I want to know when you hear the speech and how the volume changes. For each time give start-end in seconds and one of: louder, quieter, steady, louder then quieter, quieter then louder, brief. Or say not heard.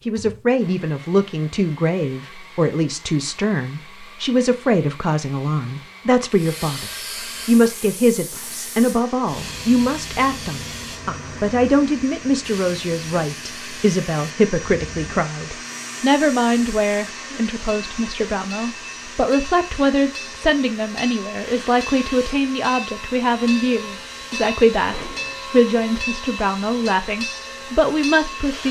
0.1-28.6 steady.